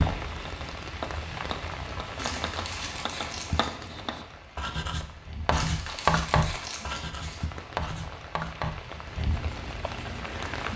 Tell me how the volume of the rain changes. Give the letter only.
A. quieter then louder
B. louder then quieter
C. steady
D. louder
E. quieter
A.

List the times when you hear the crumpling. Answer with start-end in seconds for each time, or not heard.
2.1-3.9, 5.5-7.5.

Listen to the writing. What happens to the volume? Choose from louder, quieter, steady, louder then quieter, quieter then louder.
louder then quieter.